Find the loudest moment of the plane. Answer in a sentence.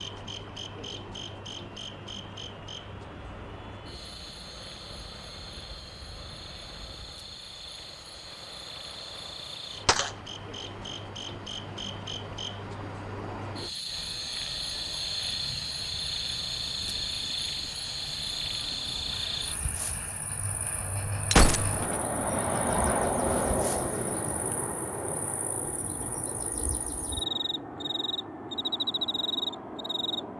The volume of the plane peaks at 23 seconds.